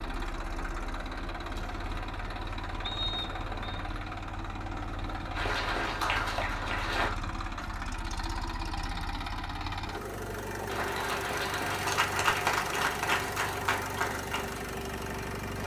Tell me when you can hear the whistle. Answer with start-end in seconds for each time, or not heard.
2.8-3.8.